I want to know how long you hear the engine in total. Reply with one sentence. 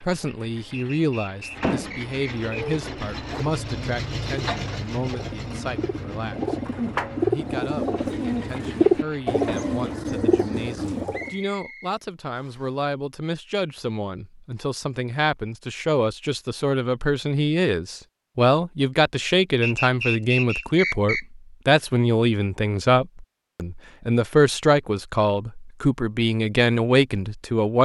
The engine can be heard for 10 seconds in total.